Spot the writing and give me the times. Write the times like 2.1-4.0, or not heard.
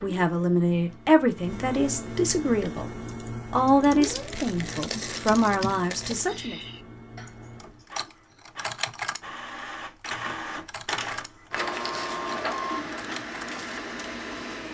not heard.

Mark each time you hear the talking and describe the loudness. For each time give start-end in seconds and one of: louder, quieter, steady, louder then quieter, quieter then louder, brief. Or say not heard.
0.0-6.5 steady.